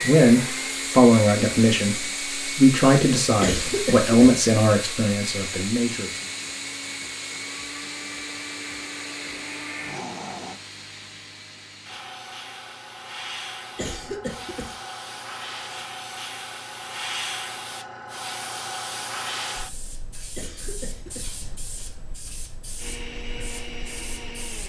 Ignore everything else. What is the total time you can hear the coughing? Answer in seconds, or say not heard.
3 s.